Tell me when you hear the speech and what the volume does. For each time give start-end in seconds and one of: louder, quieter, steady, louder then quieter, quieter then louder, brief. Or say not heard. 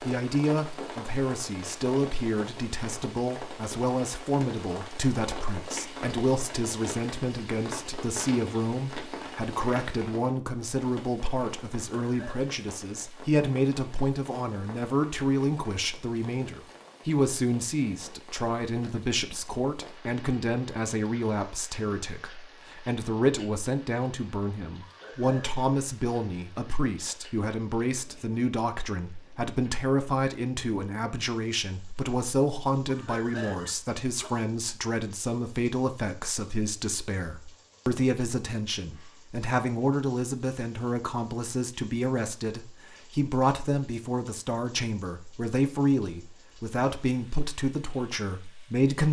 0.0-49.0 steady.